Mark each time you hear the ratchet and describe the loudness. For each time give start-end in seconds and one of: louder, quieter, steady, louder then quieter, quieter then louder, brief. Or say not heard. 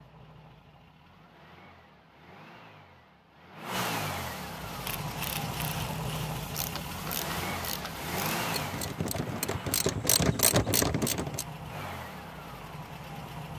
4.7-11.4 louder.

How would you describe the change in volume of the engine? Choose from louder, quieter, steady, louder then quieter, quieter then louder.
louder then quieter.